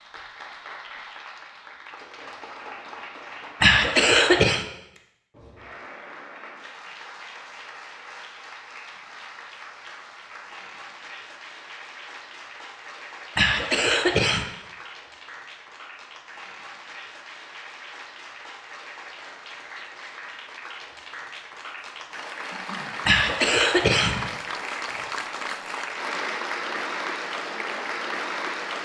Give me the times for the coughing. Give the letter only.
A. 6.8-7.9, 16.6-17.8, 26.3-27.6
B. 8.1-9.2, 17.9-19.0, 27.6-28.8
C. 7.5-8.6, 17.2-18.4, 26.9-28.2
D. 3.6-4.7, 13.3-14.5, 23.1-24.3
D.